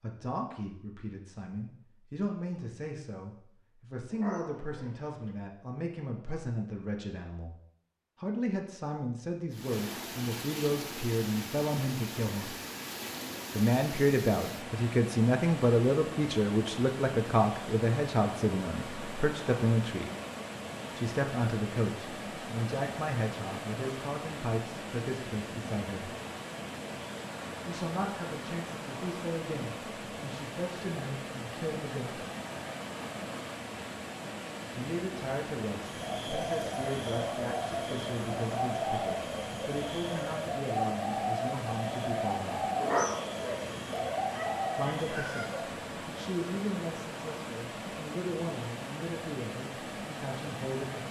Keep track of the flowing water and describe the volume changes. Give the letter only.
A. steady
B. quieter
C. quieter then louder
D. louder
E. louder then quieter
A.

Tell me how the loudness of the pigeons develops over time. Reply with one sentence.
The volume of the pigeons stays about the same.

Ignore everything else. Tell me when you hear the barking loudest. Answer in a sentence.
The loudest moment of the barking is at 43 seconds.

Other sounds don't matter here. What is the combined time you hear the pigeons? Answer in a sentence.
The pigeons can be heard for 10 seconds in total.